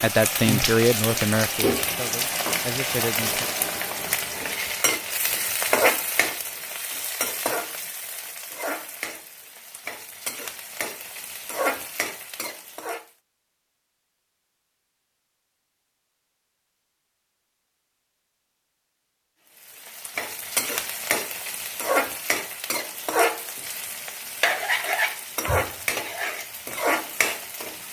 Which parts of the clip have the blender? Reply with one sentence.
You can't hear the blender here.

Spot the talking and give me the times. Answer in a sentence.
The talking can be heard from 0.0 to 3.5 s.